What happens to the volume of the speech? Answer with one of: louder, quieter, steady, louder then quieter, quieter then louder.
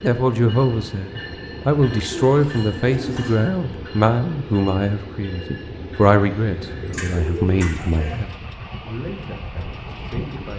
quieter.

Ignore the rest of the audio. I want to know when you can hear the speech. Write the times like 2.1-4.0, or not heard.
0.0-10.5.